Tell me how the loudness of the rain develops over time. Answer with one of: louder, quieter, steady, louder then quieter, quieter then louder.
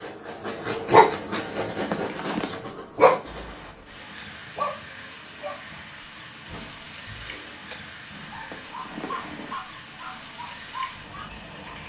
steady.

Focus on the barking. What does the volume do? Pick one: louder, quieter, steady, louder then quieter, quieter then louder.
quieter.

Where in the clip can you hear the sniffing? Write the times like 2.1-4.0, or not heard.
1.9-2.5, 8.5-9.6.